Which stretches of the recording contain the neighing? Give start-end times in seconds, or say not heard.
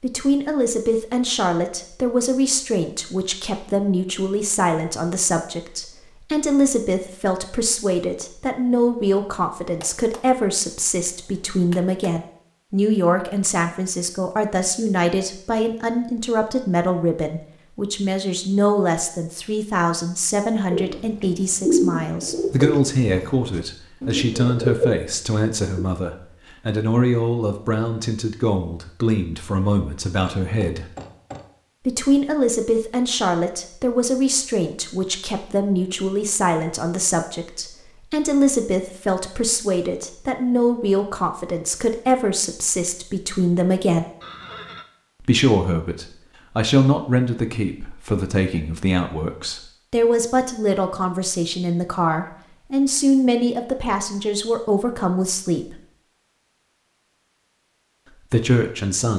44.2-44.9.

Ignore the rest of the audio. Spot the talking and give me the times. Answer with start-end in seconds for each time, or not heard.
0.0-30.9, 31.9-44.0, 45.2-55.8, 58.3-59.1.